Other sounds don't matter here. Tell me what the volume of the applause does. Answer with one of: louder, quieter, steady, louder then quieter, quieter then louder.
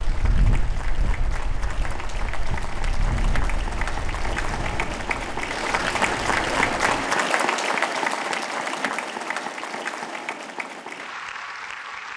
louder then quieter.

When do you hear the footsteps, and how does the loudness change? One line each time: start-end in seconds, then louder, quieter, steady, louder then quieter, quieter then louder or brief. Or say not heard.
not heard.